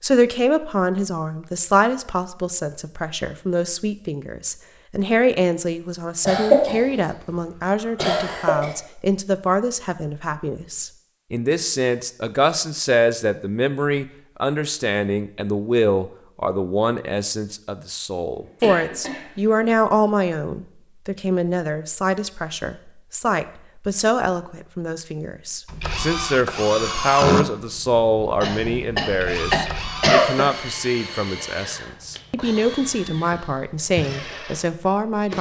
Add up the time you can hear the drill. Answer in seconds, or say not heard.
10 s.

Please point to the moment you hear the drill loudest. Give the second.
27 s.